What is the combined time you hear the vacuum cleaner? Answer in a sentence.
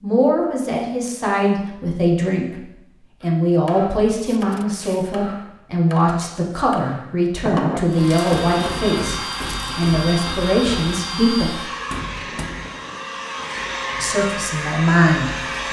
You can hear the vacuum cleaner for 8 seconds altogether.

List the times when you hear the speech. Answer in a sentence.
The speech can be heard from 0.0 to 11.5 s and from 13.9 to 15.6 s.